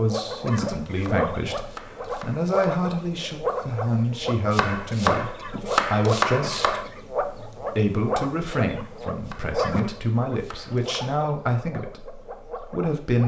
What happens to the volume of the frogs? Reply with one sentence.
The volume of the frogs goes down.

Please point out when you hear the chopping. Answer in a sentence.
You can hear the chopping from 0.5 to 2.8 s, from 4.5 to 6.8 s and from 9.2 to 11.2 s.